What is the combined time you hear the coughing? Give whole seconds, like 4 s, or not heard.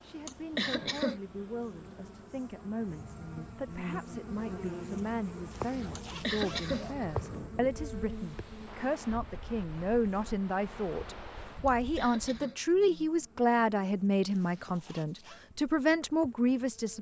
3 s.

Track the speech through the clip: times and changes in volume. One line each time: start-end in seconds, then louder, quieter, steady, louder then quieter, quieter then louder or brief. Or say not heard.
0.0-16.9 louder.